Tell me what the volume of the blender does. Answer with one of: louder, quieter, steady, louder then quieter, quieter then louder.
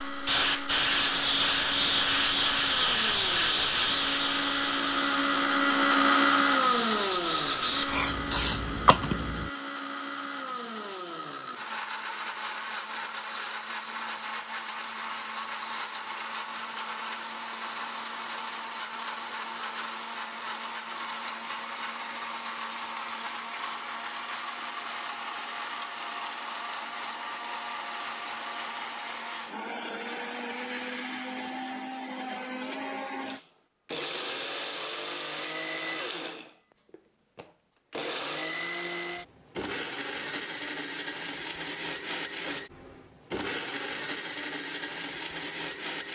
quieter.